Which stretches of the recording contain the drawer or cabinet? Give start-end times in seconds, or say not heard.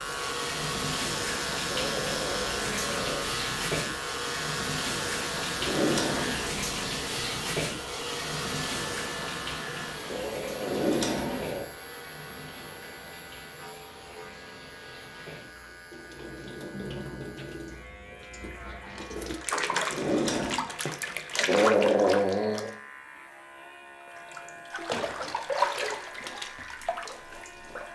5.5-6.7, 10.6-11.7, 19.9-20.6.